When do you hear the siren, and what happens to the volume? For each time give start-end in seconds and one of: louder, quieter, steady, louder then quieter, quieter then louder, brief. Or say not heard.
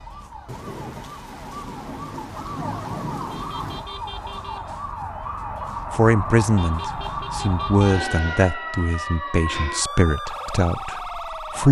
0.0-11.6 louder.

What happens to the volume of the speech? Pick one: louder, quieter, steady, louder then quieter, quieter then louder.
quieter.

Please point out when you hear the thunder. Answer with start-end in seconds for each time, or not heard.
0.5-3.9.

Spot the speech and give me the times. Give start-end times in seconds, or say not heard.
5.9-11.6.